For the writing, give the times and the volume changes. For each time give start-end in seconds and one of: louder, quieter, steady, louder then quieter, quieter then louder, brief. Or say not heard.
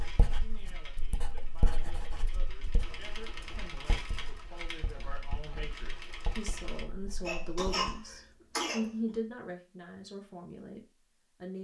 0.0-7.9 quieter.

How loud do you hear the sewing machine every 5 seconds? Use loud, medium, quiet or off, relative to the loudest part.
loud, loud, off.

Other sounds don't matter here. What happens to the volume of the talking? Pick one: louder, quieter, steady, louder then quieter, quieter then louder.
louder.